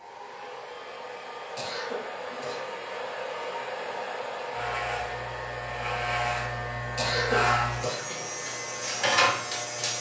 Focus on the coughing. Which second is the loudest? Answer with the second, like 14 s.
7 s.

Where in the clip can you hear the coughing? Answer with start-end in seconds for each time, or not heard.
1.6-2.8, 7.0-8.2.